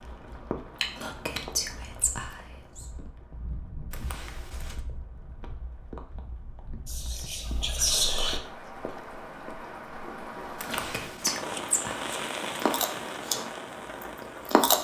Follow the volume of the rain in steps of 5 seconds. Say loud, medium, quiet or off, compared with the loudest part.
medium, medium, loud.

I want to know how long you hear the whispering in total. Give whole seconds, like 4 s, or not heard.
5 s.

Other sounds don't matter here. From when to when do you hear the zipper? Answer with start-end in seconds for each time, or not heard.
3.9-4.8, 10.6-11.3.